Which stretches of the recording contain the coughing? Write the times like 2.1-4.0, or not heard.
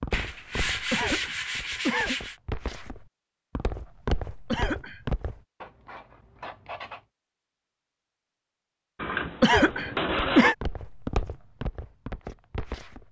0.9-2.1, 4.5-5.0, 9.4-10.6.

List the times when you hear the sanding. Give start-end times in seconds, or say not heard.
0.1-2.4, 5.6-7.0, 8.9-10.6.